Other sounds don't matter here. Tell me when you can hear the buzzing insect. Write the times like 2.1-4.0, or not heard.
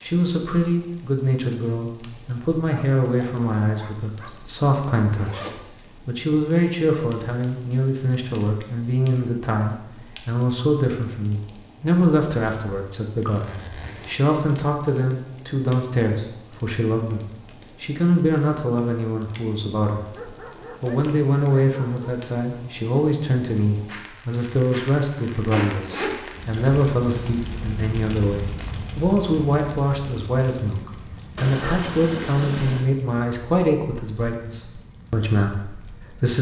not heard.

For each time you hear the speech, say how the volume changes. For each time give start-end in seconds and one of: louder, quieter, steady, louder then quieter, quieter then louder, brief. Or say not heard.
0.0-20.2 steady
20.8-36.3 steady.